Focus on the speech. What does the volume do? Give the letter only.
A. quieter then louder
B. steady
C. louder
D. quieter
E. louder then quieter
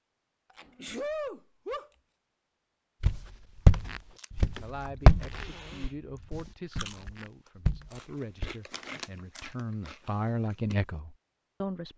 C.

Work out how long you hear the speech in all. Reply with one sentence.
You can hear the speech for 7 seconds altogether.